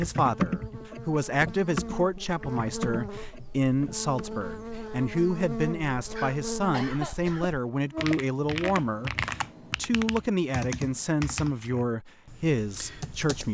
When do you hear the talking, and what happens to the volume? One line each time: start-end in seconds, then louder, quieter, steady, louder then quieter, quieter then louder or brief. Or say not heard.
0.0-13.4 steady.